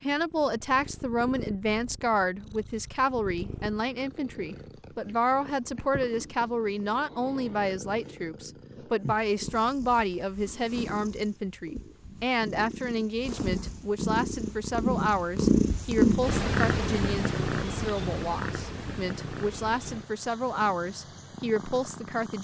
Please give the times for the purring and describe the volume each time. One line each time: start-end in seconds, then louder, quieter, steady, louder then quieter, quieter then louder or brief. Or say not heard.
0.0-22.4 louder then quieter.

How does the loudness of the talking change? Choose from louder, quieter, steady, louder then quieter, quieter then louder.
steady.